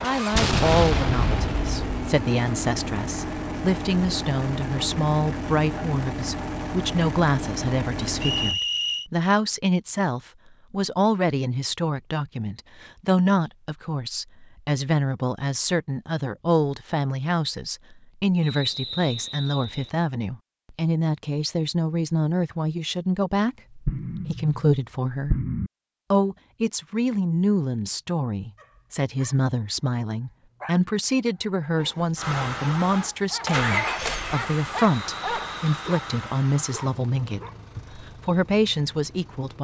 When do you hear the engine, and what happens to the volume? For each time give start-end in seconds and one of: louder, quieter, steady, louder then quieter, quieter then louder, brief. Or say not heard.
0.0-8.6 steady
32.1-39.5 quieter.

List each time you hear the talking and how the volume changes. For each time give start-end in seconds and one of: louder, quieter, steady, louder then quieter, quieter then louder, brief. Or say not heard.
0.0-25.4 steady
26.1-39.5 steady.